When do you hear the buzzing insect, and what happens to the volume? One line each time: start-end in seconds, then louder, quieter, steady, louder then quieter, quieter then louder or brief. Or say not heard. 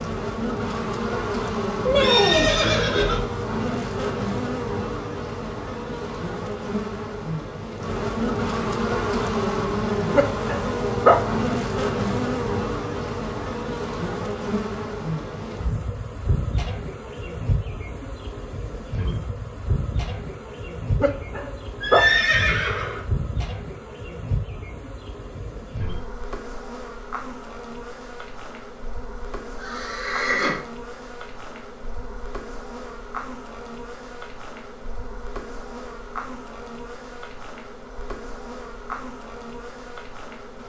0.0-40.6 quieter.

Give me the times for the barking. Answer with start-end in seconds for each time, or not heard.
10.1-11.4, 21.0-22.2.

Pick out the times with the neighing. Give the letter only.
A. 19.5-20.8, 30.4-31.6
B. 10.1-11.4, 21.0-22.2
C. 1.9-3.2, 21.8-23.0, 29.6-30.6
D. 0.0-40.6
C.